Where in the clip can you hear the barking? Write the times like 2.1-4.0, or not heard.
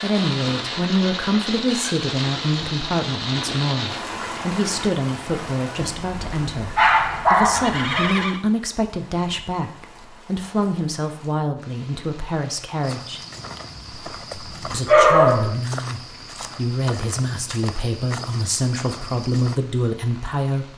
6.0-8.2, 14.8-15.5.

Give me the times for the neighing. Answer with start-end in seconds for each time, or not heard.
7.3-8.4.